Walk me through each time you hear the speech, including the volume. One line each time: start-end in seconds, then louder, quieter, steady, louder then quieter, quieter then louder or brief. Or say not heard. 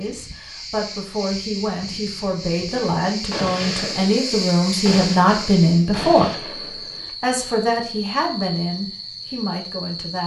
0.0-6.5 louder
7.2-10.2 brief.